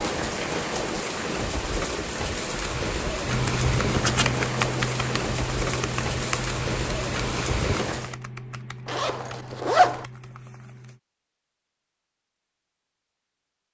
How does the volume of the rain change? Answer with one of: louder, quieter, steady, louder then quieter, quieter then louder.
steady.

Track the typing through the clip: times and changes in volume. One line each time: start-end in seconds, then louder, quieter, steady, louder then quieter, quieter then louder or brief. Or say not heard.
3.2-11.0 quieter.